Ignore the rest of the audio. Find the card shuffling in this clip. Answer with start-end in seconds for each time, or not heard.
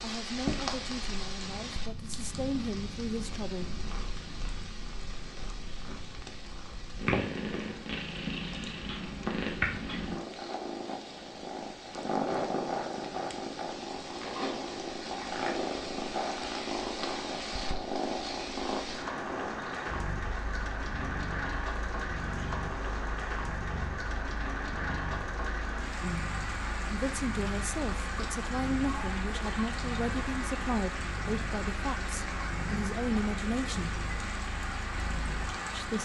not heard.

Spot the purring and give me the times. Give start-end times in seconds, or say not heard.
0.2-35.9.